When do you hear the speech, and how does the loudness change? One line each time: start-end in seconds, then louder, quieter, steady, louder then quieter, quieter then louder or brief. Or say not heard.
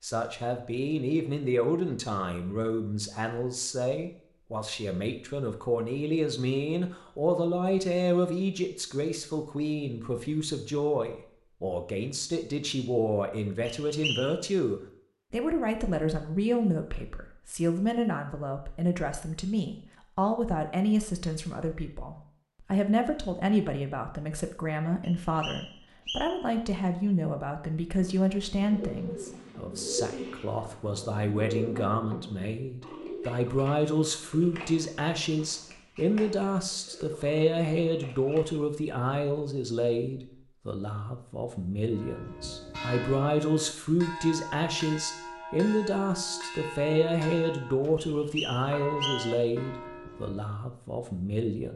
0.0-51.7 steady.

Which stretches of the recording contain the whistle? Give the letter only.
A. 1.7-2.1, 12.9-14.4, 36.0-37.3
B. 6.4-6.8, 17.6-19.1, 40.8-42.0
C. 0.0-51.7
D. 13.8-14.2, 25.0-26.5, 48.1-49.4
D.